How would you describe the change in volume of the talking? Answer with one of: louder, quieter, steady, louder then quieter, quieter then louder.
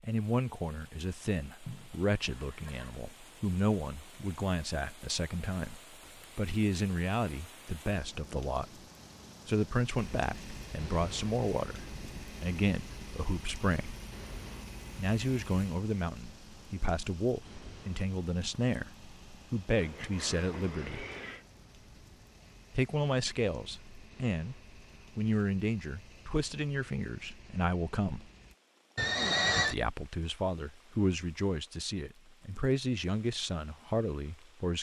steady.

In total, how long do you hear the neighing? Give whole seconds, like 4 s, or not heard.
4 s.